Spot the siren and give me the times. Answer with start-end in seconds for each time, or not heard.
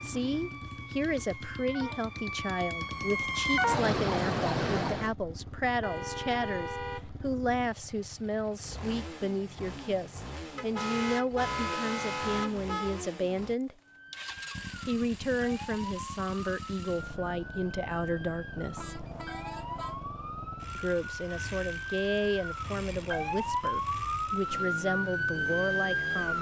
0.0-5.2, 13.8-26.3.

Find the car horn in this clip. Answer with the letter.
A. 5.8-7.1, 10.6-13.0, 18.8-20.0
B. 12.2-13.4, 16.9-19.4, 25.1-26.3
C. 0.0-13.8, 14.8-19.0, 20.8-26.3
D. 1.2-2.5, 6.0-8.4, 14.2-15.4
A.